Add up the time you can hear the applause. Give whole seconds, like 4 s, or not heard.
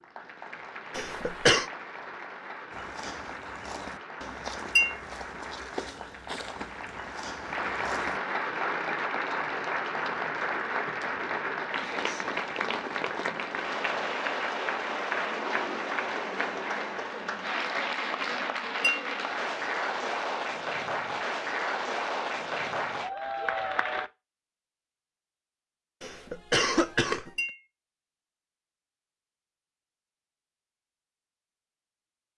24 s.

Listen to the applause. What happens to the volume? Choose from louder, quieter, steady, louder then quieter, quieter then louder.
louder.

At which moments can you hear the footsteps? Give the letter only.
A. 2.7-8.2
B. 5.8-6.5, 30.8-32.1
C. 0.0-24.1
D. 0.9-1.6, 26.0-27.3
A.